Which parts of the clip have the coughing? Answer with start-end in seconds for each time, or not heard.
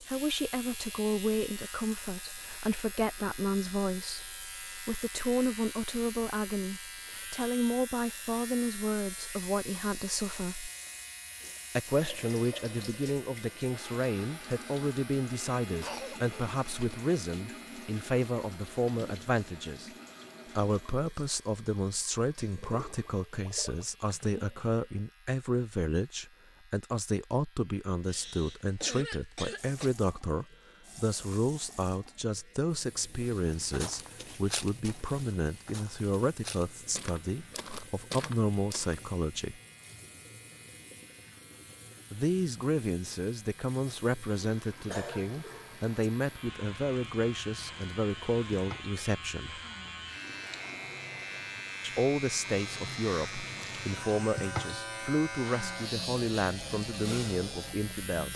15.8-16.6, 28.1-29.9, 44.9-45.9.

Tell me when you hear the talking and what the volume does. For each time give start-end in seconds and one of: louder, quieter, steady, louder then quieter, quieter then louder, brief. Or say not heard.
0.0-10.7 steady
11.8-19.9 steady
20.6-39.6 steady
42.1-49.6 steady
51.8-58.3 steady.